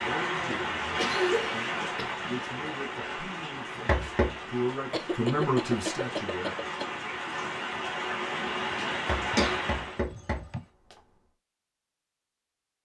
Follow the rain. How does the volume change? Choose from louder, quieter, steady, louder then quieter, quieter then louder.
quieter then louder.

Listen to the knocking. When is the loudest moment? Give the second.
4 s.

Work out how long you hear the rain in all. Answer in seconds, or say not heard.
10 s.